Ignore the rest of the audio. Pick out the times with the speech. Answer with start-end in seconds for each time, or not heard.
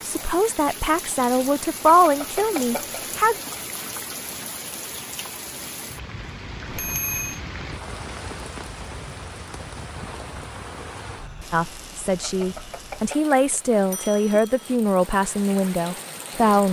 0.1-3.4, 11.5-16.6.